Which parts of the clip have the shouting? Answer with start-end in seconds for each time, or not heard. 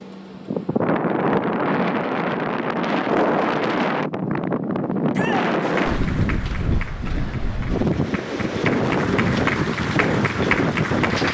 5.1-5.5.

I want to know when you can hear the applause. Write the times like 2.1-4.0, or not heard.
5.6-11.2.